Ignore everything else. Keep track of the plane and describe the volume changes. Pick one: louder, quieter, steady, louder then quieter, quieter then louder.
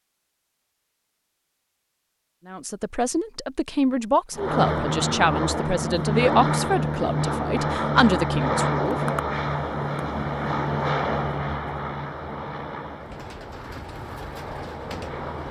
quieter.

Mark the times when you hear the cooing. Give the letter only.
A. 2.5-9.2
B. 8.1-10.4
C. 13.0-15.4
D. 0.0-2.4
C.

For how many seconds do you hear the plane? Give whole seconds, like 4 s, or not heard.
11 s.